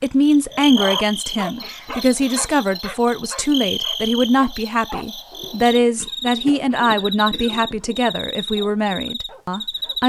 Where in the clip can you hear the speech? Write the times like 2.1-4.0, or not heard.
0.0-10.0.